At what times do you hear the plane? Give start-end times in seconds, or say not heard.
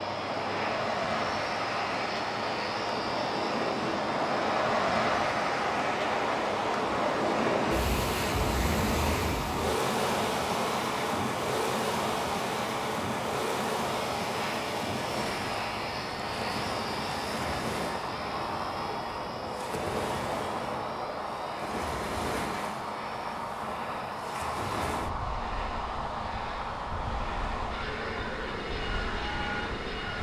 0.0-30.1.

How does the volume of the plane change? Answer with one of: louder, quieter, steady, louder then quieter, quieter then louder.
steady.